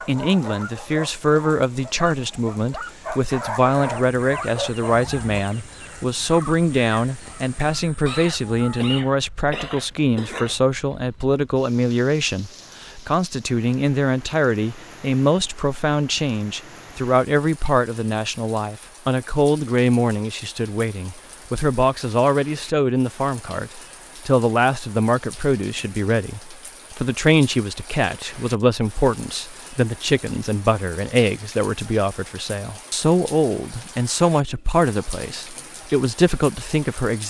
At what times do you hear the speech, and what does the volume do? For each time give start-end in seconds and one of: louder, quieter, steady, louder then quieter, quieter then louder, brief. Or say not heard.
0.1-37.2 steady.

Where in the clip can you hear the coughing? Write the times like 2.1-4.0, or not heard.
8.1-10.6.